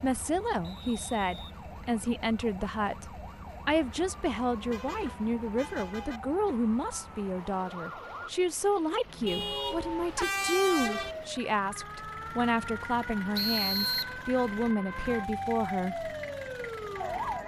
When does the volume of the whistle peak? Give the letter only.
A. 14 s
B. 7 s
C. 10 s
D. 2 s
A.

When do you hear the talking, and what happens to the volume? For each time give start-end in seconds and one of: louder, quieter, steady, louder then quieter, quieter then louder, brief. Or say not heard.
0.0-16.1 steady.